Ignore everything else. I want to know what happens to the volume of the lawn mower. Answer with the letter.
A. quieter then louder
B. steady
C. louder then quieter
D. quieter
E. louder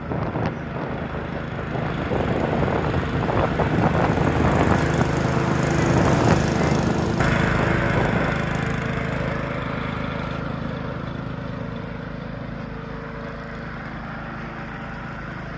C.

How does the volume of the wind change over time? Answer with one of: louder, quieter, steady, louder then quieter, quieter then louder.
louder then quieter.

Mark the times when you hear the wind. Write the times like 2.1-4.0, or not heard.
0.0-8.3.